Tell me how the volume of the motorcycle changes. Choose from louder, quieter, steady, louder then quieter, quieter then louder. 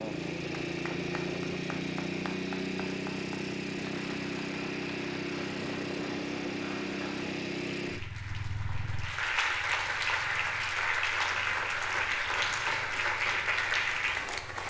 quieter.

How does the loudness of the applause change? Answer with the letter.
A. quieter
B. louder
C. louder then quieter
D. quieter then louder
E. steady
B.